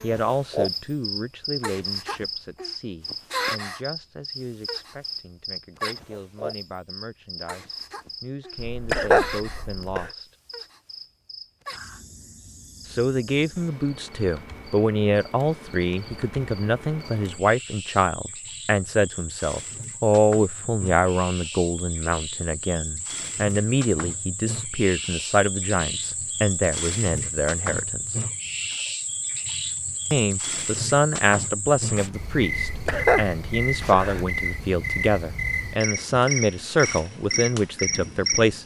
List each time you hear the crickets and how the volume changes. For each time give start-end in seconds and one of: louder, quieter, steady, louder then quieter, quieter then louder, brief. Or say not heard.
0.0-38.6 quieter then louder.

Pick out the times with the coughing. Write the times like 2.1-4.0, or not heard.
8.6-10.1, 32.6-34.2.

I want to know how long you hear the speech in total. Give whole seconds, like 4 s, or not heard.
34 s.